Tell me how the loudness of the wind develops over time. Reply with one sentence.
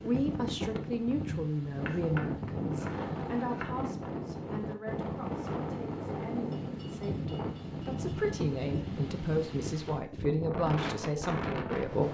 The loudness of the wind stays about the same.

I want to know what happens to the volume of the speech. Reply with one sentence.
The volume of the speech goes down, then up.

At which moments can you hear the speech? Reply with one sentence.
You can hear the speech from 0.0 to 12.0 s.